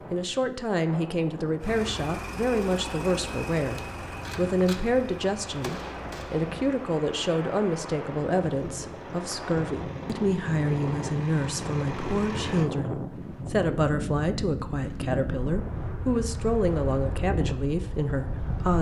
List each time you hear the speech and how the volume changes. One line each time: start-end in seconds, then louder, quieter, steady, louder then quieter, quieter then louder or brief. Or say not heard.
0.1-18.7 steady.